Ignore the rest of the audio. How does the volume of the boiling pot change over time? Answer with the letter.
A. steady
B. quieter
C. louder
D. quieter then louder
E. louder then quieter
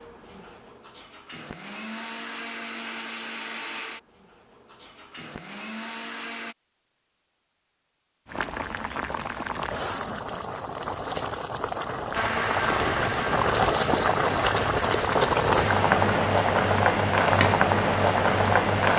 C.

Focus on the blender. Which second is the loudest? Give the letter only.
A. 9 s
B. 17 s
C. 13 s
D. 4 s
C.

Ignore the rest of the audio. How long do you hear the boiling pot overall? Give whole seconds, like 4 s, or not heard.
11 s.